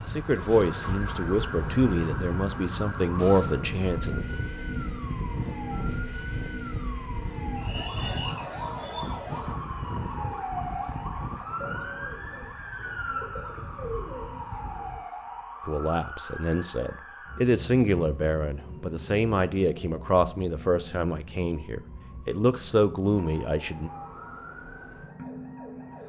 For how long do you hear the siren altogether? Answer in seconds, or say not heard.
26 s.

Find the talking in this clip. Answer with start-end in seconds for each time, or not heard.
0.1-4.2, 15.7-23.9.